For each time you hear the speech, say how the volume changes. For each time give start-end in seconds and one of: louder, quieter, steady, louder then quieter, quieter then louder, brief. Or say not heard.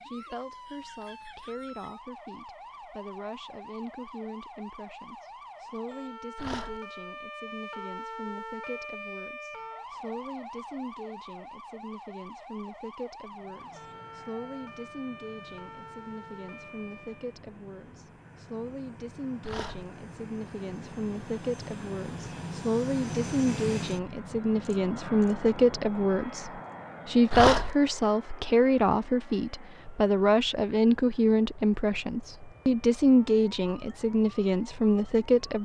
0.0-35.6 louder.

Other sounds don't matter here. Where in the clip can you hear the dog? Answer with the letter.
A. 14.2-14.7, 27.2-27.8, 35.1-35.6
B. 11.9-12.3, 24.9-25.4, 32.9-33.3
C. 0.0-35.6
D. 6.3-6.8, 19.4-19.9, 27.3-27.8
D.